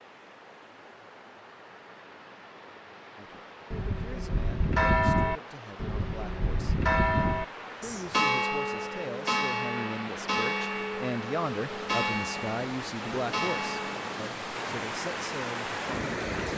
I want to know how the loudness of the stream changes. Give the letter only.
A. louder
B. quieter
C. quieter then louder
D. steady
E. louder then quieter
A.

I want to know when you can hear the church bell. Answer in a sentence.
The church bell can be heard from 3.7 to 14.2 s.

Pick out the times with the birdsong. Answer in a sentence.
You can't hear the birdsong here.